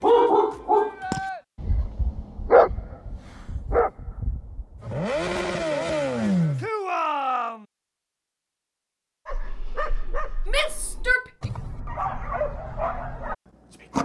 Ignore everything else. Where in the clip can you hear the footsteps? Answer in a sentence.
You can't hear the footsteps here.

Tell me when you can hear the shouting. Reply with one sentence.
You can hear the shouting from 0.4 to 1.4 s, from 6.6 to 7.7 s and from 10.4 to 11.2 s.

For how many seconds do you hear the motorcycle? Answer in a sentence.
The motorcycle can be heard for 2 seconds in total.